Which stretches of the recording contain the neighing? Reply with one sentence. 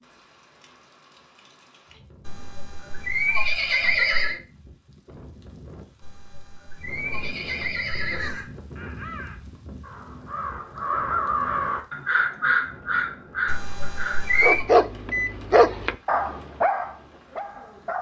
You can hear the neighing from 2.2 to 4.4 s, from 6.0 to 8.4 s and from 13.4 to 14.7 s.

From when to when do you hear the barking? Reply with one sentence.
The barking can be heard from 14.4 to 17.9 s.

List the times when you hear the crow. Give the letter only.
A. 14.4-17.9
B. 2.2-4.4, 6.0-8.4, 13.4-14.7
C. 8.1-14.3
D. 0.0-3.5
C.